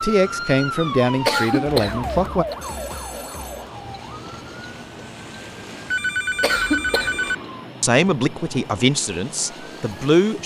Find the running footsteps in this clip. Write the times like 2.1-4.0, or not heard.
not heard.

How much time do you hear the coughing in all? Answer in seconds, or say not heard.
2 s.